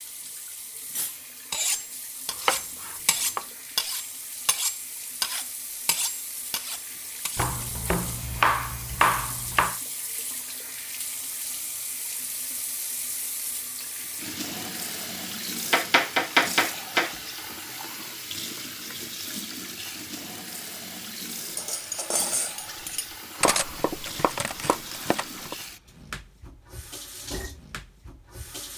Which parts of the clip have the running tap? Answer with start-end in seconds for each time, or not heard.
0.0-28.7.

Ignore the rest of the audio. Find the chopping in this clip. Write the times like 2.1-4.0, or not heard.
2.5-3.5, 7.3-9.8, 15.7-17.1, 23.4-25.6.